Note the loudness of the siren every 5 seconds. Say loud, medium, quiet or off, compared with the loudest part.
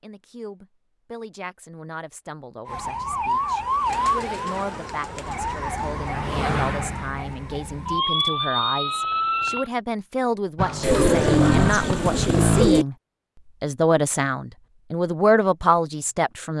loud, loud, off, off.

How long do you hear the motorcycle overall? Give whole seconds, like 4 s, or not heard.
2 s.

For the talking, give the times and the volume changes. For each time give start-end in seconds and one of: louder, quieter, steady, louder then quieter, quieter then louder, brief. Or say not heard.
0.0-12.9 louder
13.6-16.5 brief.